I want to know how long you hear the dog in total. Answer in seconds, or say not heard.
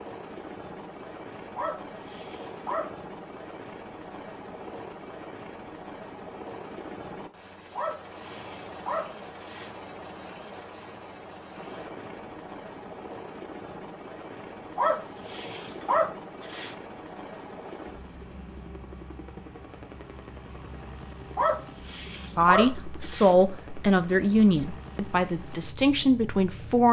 7 s.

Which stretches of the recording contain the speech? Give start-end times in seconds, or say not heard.
22.4-26.8.